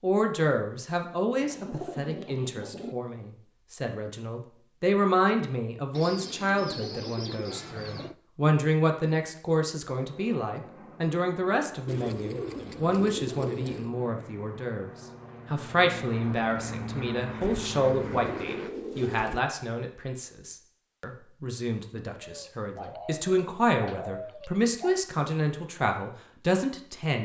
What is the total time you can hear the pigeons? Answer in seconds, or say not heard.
11 s.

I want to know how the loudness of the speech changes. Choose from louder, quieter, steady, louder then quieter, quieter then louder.
steady.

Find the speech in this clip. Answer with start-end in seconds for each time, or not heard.
0.0-27.2.